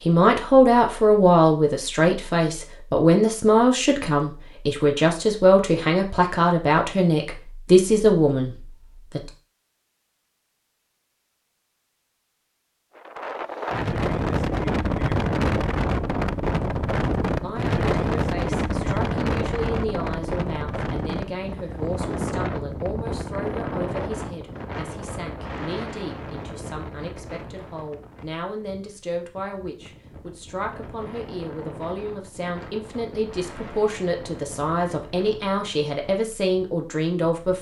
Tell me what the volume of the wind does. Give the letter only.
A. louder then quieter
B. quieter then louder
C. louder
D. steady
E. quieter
E.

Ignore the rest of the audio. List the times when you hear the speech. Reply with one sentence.
The speech can be heard from 0.0 to 9.3 s and from 17.4 to 37.5 s.